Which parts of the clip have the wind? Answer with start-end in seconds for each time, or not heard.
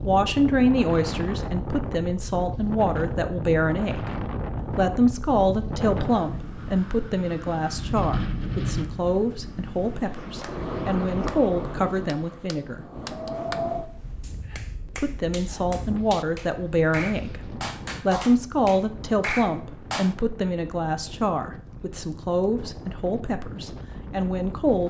0.0-24.8.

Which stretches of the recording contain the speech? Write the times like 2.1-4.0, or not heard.
0.0-12.8, 14.9-24.8.